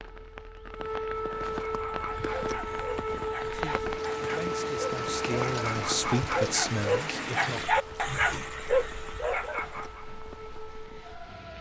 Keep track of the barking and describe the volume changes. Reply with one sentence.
The loudness of the barking goes up.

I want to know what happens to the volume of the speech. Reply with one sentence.
The volume of the speech goes up.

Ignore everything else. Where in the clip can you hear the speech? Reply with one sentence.
You can hear the speech from 3.5 to 7.6 s.